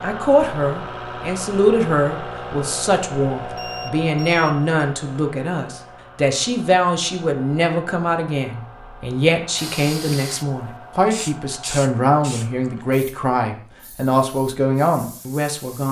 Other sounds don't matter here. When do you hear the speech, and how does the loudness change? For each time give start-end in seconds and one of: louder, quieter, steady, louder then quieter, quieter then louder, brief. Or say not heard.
0.0-15.8 steady.